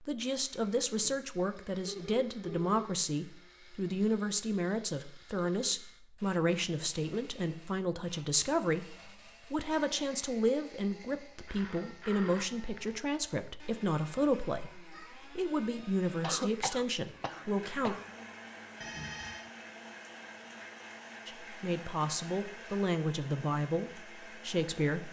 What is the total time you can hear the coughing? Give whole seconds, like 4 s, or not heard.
2 s.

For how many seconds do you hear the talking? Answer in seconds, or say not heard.
22 s.